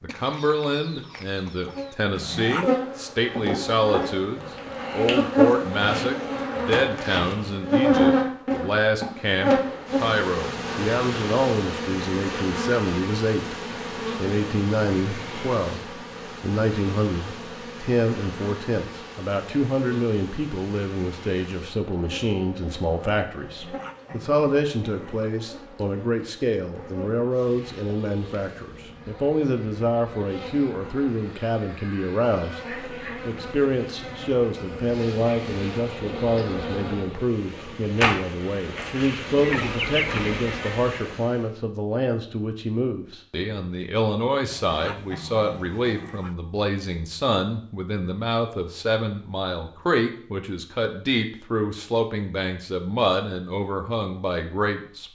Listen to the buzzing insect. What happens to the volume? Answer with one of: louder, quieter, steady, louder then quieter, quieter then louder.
quieter then louder.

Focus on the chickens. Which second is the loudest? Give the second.
40 s.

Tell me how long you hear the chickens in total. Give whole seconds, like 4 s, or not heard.
3 s.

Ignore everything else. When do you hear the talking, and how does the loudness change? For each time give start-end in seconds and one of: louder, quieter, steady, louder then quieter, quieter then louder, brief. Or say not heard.
0.0-13.6 steady
14.2-55.1 steady.